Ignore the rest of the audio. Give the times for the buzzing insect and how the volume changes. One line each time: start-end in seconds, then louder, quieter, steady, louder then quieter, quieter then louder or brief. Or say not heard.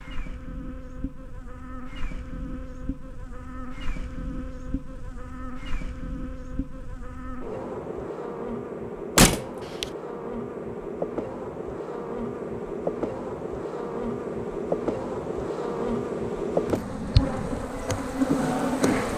0.0-19.1 louder.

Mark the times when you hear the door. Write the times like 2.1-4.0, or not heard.
9.2-9.8.